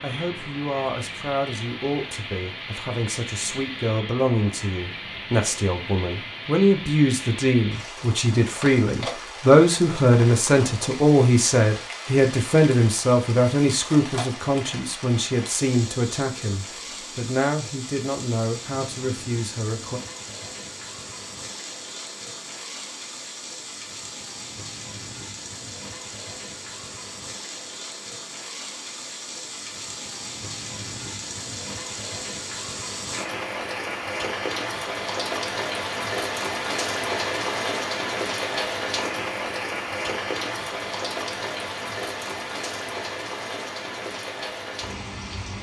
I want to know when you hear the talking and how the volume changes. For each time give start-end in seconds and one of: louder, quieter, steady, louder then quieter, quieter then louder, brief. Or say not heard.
0.0-20.0 louder then quieter.